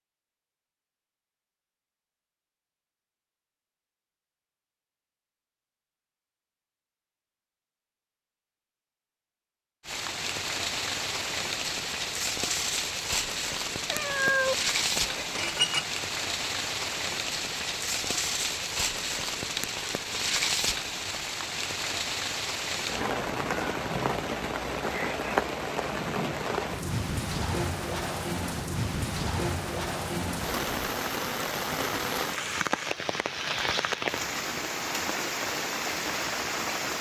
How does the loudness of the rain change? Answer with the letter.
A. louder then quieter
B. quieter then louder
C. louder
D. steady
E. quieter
D.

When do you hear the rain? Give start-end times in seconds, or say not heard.
9.8-36.9.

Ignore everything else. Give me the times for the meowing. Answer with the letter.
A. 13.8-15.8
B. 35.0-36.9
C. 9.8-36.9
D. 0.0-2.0
A.